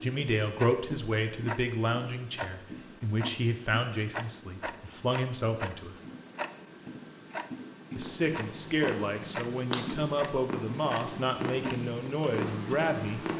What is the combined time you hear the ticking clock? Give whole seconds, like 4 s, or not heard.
13 s.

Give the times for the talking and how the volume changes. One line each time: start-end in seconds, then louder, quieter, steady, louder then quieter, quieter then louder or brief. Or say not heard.
0.0-6.0 steady
8.0-13.2 steady.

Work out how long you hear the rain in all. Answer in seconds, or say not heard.
not heard.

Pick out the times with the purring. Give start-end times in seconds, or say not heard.
8.0-13.3.